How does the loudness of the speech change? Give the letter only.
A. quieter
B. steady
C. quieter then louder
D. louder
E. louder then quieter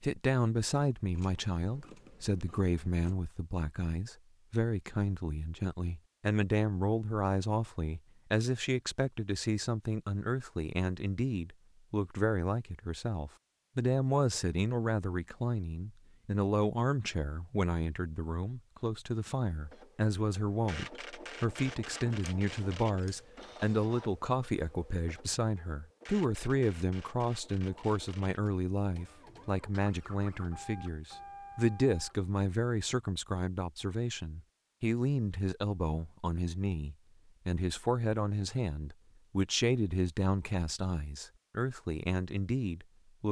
B.